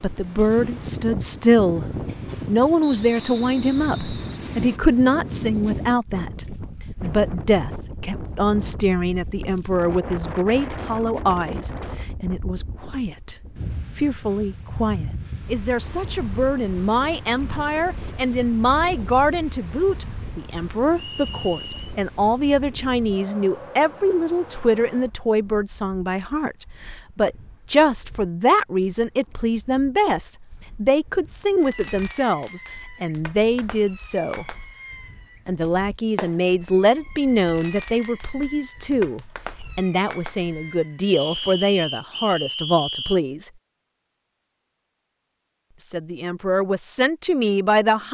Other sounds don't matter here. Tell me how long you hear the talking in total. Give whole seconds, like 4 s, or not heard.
44 s.